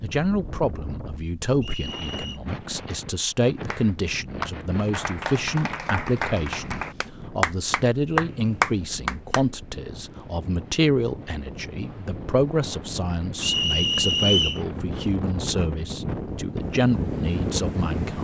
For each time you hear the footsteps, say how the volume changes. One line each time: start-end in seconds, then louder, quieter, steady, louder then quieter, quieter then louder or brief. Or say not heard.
not heard.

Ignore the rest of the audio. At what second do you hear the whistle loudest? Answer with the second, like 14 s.
14 s.